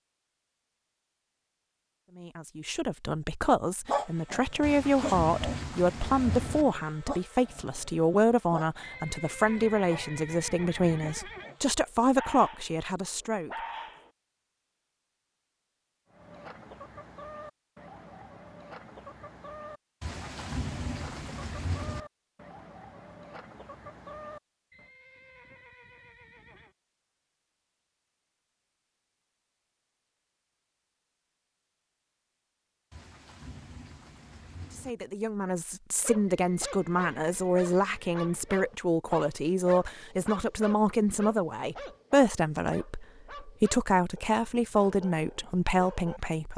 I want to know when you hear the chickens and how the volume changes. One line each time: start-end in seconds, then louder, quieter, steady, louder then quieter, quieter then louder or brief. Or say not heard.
16.1-24.9 steady.